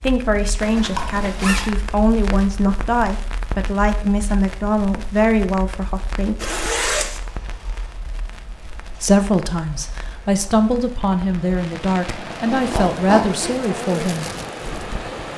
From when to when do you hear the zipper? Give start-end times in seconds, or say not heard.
0.6-1.7, 6.4-7.2, 12.5-13.7.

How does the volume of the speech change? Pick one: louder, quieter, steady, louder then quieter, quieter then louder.
steady.